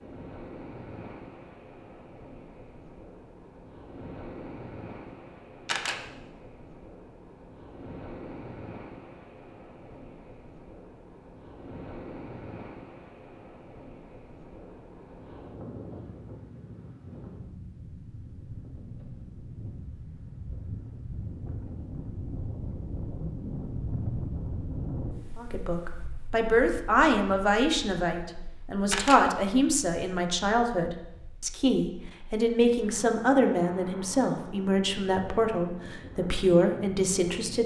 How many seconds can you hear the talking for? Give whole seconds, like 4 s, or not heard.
12 s.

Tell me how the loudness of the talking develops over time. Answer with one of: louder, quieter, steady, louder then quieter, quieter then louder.
steady.